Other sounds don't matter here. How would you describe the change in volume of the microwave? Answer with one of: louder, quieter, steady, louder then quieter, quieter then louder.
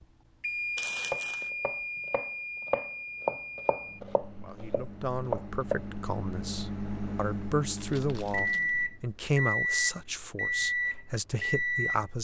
quieter then louder.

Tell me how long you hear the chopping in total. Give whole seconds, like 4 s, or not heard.
5 s.